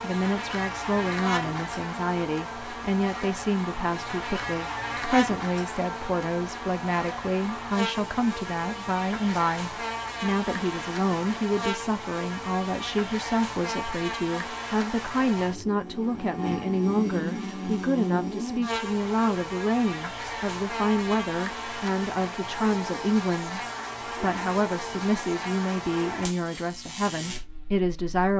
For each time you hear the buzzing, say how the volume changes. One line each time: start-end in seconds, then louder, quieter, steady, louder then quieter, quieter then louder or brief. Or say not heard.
0.0-28.3 steady.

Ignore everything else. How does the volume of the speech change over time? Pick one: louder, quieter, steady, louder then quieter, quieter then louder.
steady.